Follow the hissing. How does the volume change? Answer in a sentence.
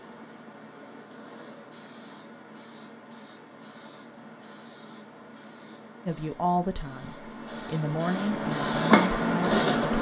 The loudness of the hissing goes up.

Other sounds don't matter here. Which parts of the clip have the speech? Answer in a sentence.
You can hear the speech from 6.0 to 9.9 s.